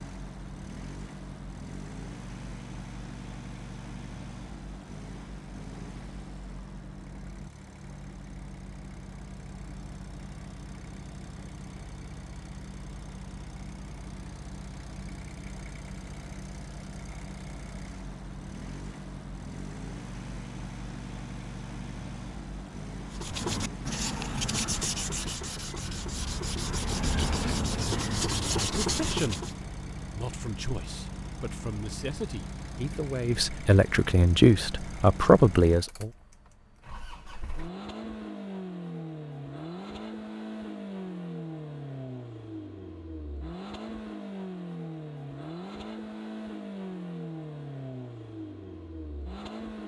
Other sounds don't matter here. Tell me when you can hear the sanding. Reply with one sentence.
The sanding can be heard from 23.1 to 29.6 s.